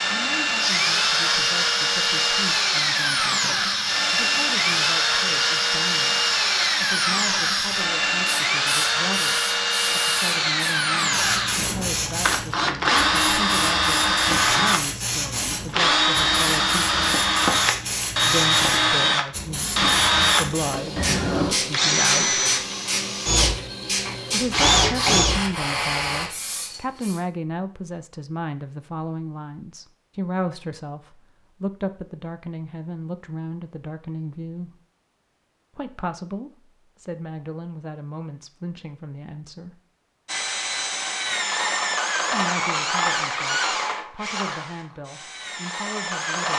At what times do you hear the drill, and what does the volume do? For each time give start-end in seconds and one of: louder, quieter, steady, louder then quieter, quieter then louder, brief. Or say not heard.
0.0-25.5 steady
40.2-46.5 quieter.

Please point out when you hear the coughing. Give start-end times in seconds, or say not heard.
not heard.